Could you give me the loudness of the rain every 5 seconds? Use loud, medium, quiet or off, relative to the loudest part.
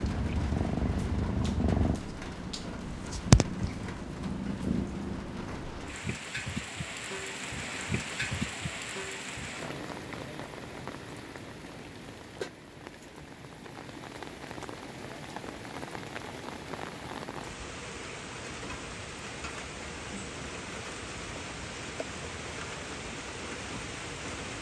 medium, loud, medium, loud, loud.